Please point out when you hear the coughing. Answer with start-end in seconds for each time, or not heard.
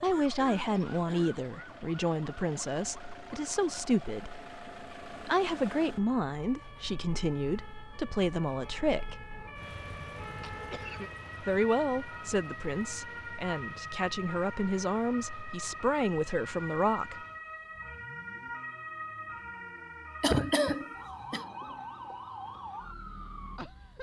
0.1-1.4, 10.4-11.1, 20.2-21.4.